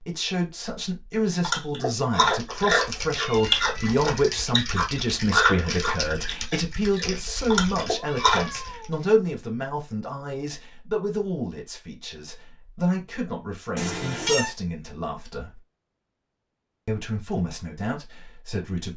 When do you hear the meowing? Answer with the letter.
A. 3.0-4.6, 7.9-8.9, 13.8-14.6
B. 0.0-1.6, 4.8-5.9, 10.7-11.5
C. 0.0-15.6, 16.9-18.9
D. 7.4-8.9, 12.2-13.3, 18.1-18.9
A.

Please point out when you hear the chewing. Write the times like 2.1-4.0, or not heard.
1.4-8.4.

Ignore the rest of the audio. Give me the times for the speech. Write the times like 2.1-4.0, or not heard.
0.0-15.6, 16.9-18.9.